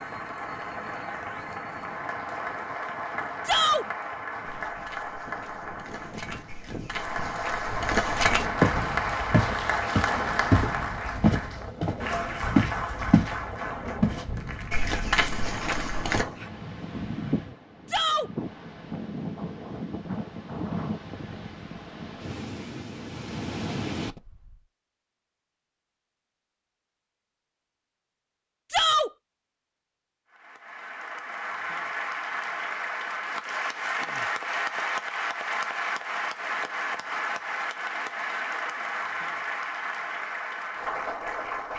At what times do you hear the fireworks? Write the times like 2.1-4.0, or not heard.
not heard.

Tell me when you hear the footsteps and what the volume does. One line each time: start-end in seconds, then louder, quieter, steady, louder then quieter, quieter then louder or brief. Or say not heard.
4.5-13.3 louder
14.0-16.2 brief.